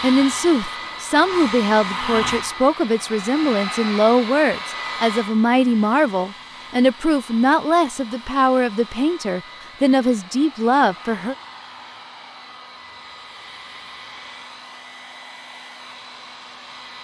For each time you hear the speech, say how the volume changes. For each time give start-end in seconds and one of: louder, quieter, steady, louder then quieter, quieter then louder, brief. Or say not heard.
0.0-11.3 steady.